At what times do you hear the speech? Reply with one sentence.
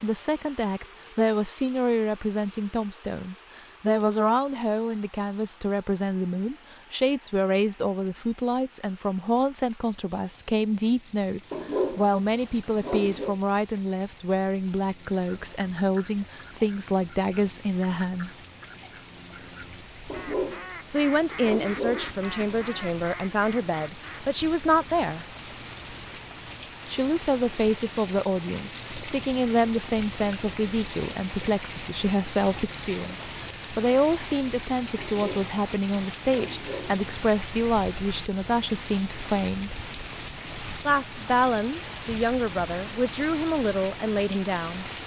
You can hear the speech from 0.0 to 18.4 s, from 20.9 to 25.2 s, from 26.9 to 39.8 s and from 40.9 to 44.9 s.